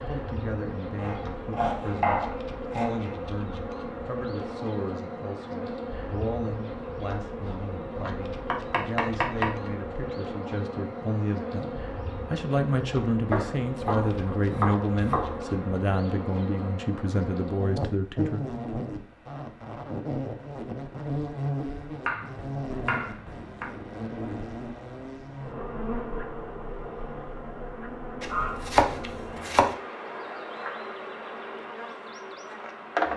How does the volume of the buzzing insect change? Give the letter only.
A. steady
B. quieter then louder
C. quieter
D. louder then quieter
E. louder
A.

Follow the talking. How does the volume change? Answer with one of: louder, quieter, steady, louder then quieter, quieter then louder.
louder.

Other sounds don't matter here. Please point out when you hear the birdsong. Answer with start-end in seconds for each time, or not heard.
not heard.